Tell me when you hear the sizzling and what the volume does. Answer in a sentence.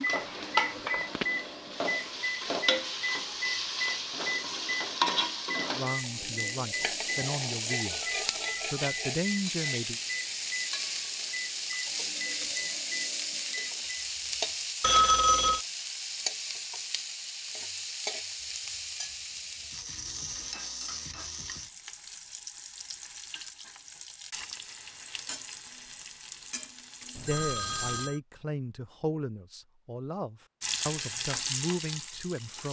You can hear the sizzling from 0.0 to 28.1 s, getting quieter; and briefly from 30.6 to 32.6 s.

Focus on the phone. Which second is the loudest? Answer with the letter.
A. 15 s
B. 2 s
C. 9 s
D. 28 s
A.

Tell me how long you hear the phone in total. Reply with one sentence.
You can hear the phone for 3 seconds altogether.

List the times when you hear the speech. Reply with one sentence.
You can hear the speech from 5.8 to 8.0 s, from 8.7 to 10.0 s and from 27.2 to 32.6 s.